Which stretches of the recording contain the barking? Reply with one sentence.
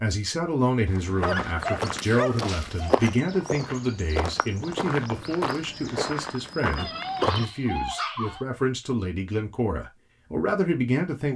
You can hear the barking from 1.2 to 3.0 s and from 6.8 to 8.4 s.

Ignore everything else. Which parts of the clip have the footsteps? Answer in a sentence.
The footsteps can be heard from 0.8 to 7.5 s.